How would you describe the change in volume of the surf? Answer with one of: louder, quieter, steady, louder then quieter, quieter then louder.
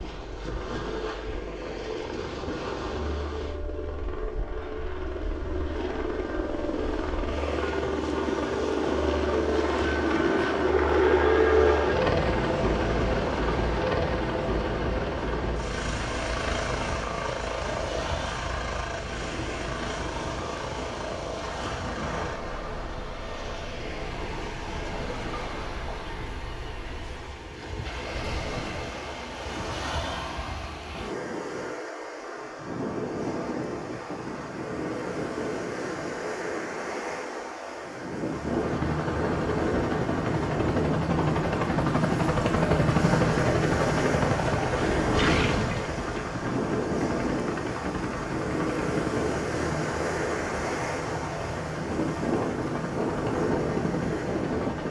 louder.